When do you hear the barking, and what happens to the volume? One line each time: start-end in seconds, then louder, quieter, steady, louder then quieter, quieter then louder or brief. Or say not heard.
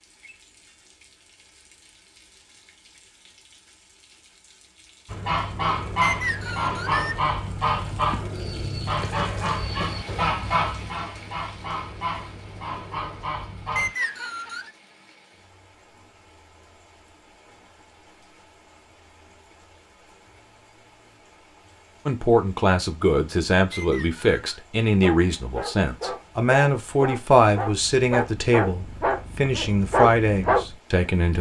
24.9-30.7 louder.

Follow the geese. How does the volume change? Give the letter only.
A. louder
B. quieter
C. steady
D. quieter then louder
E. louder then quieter
B.